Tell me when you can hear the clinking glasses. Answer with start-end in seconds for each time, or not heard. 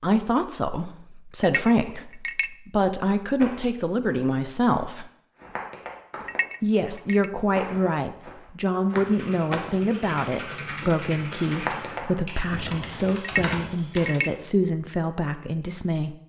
1.4-2.5, 6.2-7.3, 13.2-14.3.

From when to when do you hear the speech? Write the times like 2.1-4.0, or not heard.
0.0-5.0, 6.6-16.1.